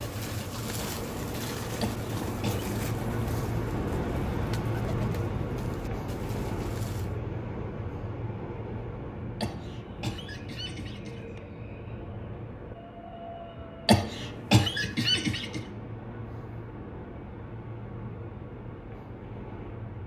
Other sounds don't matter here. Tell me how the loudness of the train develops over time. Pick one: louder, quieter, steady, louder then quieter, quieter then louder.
quieter.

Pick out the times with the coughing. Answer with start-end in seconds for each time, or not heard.
1.8-2.6, 9.4-11.4, 13.8-15.6.